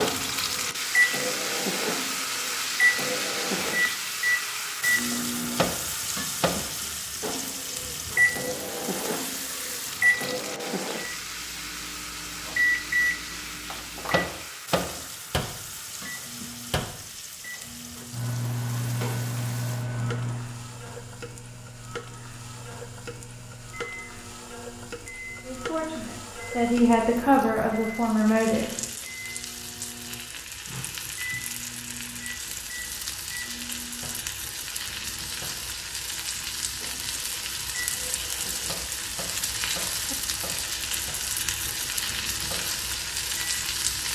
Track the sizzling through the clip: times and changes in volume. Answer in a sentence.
The sizzling can be heard from 0.0 to 44.1 s, getting quieter then louder.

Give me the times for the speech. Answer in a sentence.
The speech can be heard from 25.4 to 28.6 s.